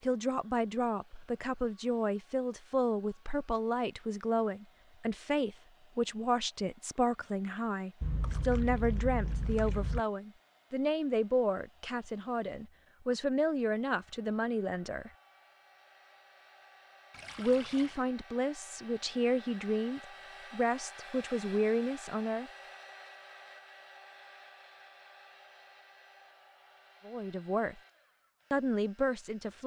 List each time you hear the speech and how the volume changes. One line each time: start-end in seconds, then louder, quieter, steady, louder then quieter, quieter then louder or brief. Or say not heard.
0.0-15.1 steady
17.4-22.5 steady
27.1-27.8 brief
28.5-29.6 brief.